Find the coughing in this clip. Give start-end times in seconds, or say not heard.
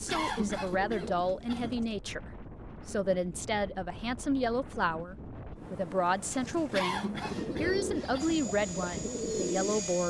0.1-1.8, 6.7-8.4.